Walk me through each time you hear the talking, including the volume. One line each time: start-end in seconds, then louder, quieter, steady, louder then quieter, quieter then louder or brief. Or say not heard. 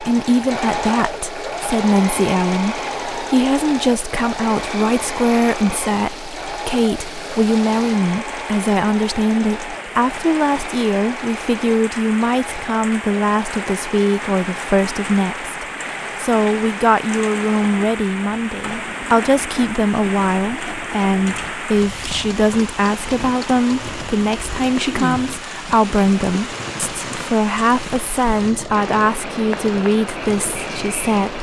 0.0-31.3 steady.